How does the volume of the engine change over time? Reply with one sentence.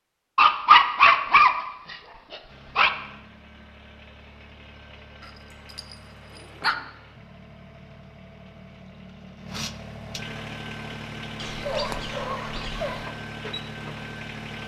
The loudness of the engine goes up.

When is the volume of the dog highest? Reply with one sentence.
The loudest moment of the dog is at 1 second.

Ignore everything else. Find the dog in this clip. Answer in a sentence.
The dog can be heard from 0.3 to 2.9 s, from 5.2 to 6.8 s and from 11.3 to 13.2 s.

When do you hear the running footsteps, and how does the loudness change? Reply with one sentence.
The running footsteps can't be heard in this clip.